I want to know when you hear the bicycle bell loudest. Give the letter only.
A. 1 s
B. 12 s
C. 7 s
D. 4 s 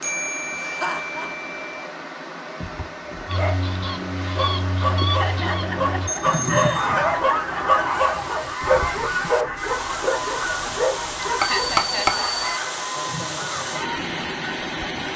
B.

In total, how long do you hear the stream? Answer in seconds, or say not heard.
15 s.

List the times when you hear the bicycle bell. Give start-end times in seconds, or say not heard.
0.0-1.6, 6.0-6.9, 11.4-12.6.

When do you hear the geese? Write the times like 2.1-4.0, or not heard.
3.2-14.6.